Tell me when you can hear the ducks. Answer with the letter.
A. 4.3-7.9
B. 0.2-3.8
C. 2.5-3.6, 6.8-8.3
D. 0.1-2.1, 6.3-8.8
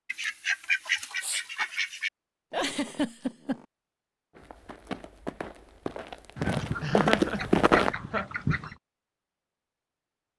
D.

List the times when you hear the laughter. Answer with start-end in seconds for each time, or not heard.
2.5-3.6, 6.8-8.3.